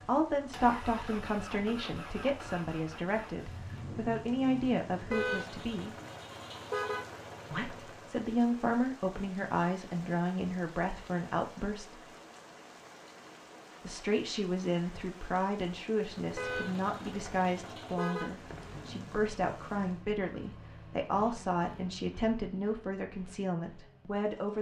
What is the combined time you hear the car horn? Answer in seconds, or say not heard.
4 s.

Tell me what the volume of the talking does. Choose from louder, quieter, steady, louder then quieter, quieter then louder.
steady.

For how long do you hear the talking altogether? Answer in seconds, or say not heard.
21 s.